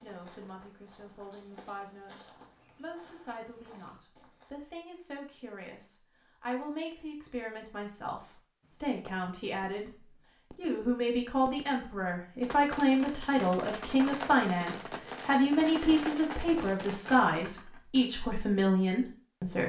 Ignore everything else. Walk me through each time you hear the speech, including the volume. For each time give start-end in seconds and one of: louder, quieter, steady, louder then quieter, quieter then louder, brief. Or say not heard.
0.0-19.6 louder.